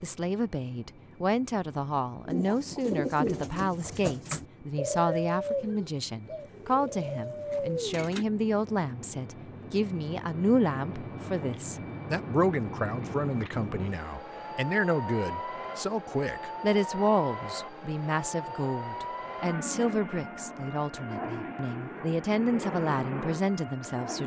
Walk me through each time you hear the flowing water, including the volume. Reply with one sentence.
You can't hear the flowing water here.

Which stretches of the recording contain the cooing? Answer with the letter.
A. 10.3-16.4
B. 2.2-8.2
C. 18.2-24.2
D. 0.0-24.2
B.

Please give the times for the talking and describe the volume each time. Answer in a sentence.
The talking can be heard from 0.0 to 24.2 s, at a steady volume.